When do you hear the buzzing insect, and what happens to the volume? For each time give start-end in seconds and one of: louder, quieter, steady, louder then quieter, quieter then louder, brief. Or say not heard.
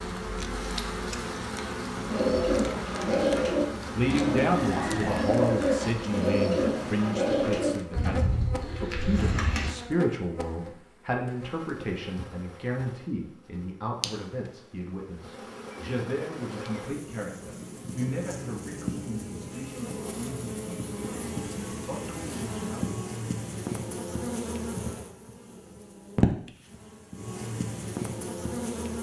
0.0-28.9 quieter then louder.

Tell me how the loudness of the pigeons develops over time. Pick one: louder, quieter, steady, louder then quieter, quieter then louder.
quieter.